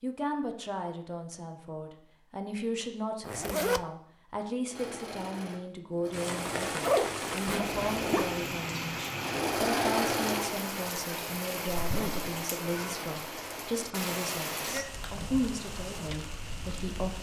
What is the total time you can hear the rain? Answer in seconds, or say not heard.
11 s.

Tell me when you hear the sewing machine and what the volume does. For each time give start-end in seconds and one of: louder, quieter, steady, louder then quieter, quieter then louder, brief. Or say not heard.
4.7-10.5 louder.